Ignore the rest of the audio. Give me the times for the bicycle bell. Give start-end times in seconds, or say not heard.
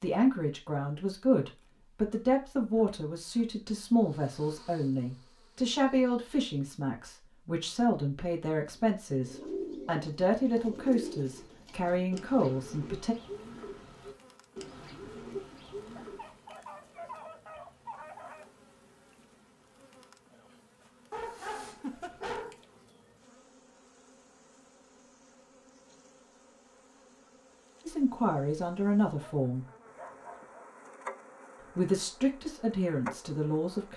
not heard.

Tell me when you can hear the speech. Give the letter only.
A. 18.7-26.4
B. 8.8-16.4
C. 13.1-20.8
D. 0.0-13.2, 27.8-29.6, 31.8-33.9
D.